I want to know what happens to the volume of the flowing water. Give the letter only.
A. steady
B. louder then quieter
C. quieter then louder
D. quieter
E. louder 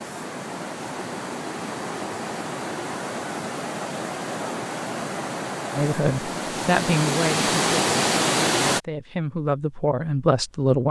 E.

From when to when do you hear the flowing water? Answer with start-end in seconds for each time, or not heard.
0.0-8.8.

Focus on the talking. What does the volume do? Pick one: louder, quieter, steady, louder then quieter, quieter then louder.
quieter then louder.